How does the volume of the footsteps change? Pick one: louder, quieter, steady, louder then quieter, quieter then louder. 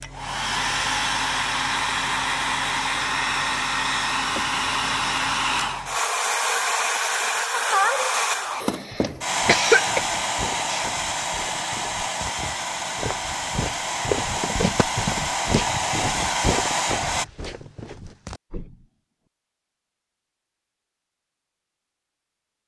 louder then quieter.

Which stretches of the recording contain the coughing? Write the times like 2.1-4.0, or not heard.
8.5-10.0.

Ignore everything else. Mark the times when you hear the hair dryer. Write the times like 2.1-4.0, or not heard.
0.0-17.2.